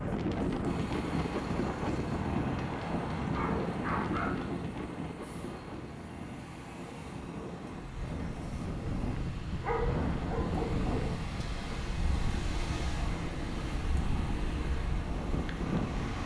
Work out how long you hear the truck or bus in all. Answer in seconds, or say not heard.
16 s.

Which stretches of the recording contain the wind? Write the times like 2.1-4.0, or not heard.
0.0-16.2.